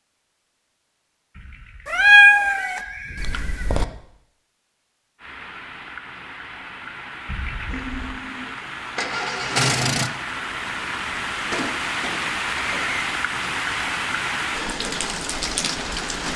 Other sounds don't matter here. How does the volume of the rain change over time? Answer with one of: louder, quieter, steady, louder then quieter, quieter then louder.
louder.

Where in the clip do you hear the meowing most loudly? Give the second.
2 s.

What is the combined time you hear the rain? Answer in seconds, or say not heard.
11 s.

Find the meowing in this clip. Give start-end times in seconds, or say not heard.
1.9-3.9.